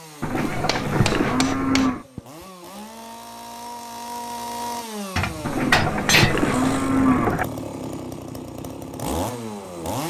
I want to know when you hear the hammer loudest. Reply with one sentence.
The volume of the hammer peaks at 6 seconds.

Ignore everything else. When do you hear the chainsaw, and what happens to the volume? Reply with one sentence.
The chainsaw can be heard from 0.0 to 10.0 s, getting louder.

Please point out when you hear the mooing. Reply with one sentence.
The mooing can be heard from 0.2 to 2.0 s and from 5.4 to 7.5 s.